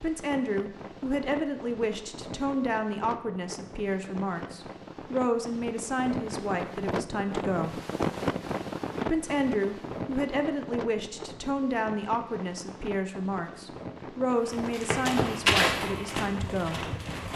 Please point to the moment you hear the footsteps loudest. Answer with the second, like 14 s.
16 s.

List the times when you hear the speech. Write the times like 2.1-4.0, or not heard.
0.0-7.8, 9.1-16.9.